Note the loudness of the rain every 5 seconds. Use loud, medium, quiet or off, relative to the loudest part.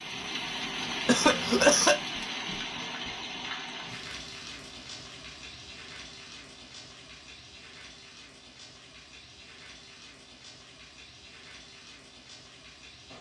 loud, quiet, quiet.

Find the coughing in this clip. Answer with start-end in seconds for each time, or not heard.
1.1-2.0.